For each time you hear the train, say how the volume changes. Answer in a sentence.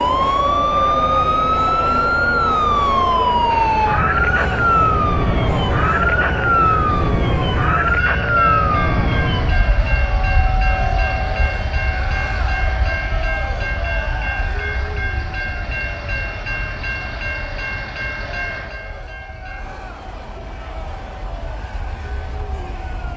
You can hear the train from 0.0 to 23.1 s, getting quieter.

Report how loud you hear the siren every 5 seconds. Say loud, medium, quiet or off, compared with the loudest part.
loud, loud, quiet, quiet, quiet.